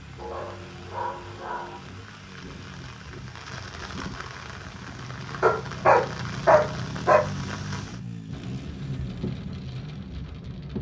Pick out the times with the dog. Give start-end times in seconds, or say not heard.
0.1-1.8, 5.4-7.2.